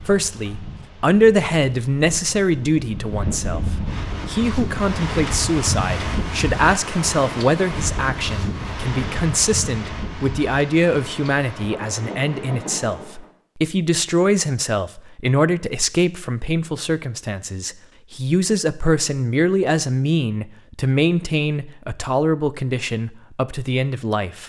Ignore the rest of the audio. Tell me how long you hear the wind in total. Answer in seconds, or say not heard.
13 s.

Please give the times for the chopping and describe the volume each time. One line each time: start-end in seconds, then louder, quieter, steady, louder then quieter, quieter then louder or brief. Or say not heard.
not heard.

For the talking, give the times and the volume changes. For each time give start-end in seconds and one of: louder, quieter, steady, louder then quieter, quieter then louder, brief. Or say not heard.
0.0-24.4 steady.